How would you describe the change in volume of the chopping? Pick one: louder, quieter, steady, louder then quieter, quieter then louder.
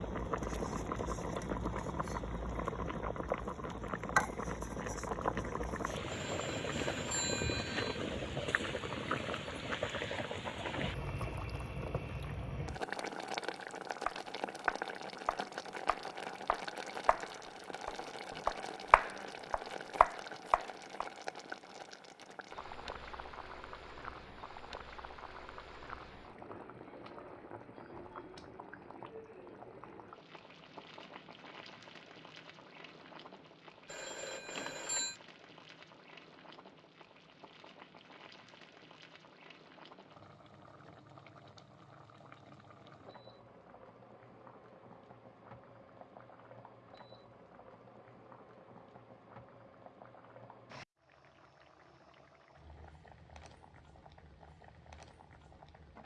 quieter then louder.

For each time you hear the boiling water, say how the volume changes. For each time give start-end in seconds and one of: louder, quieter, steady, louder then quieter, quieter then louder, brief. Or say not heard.
0.0-56.0 quieter.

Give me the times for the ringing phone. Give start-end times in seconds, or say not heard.
6.1-8.0, 33.9-35.1.